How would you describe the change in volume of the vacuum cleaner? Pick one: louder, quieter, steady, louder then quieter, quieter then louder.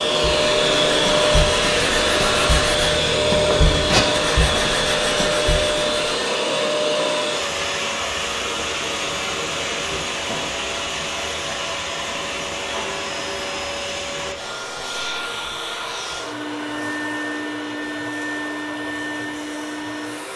quieter.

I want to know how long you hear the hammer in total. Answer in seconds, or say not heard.
not heard.